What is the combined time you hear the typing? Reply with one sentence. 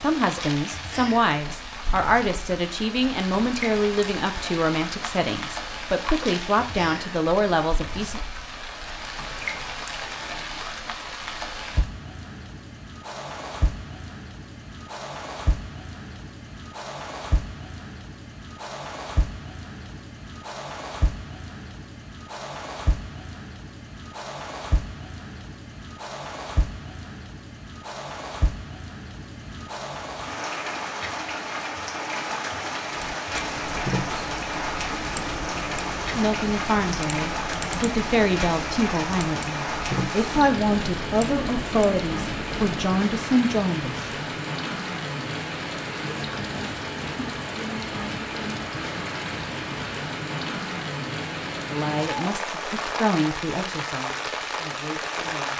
The typing can be heard for 10 seconds in total.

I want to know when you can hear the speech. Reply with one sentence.
The speech can be heard from 0.0 to 8.2 s, from 36.1 to 44.1 s and from 51.7 to 55.5 s.